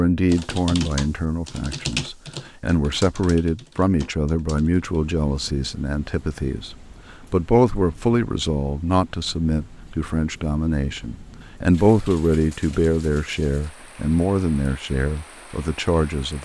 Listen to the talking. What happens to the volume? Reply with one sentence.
The loudness of the talking stays about the same.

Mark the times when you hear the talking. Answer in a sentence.
You can hear the talking from 0.0 to 16.4 s.